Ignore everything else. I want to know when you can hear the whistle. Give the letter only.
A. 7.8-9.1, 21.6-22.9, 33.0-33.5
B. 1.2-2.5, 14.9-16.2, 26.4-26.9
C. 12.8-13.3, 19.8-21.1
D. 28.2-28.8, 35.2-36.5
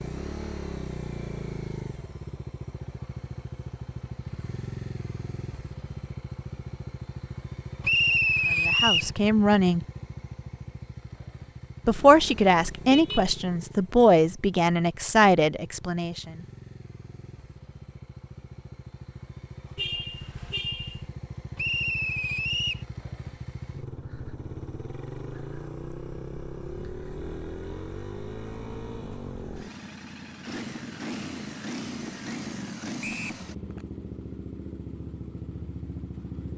A.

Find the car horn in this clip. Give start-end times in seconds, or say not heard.
12.8-13.3, 19.8-21.1.